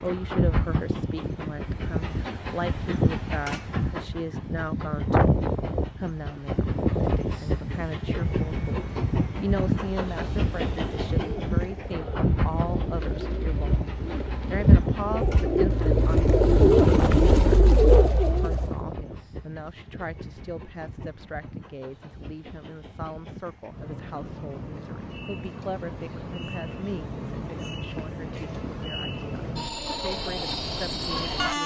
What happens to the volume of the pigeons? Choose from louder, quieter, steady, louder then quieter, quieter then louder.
louder.